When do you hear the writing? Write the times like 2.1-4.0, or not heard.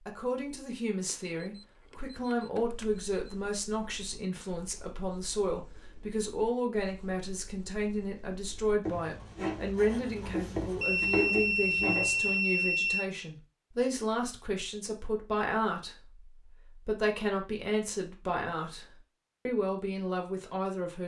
2.8-12.4.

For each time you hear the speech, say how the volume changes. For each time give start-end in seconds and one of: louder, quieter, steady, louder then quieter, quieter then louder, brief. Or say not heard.
0.1-21.0 steady.